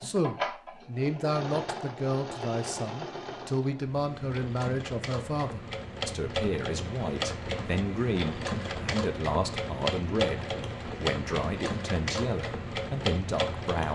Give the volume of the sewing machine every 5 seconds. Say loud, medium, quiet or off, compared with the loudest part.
medium, loud, loud.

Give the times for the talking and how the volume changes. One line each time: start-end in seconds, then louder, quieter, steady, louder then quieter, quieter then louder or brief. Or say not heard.
0.0-13.8 steady.